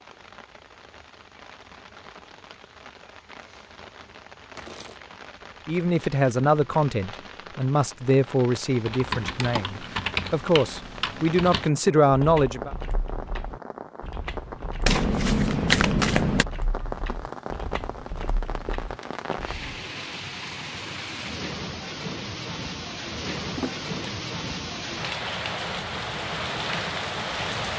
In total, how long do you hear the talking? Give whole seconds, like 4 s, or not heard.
7 s.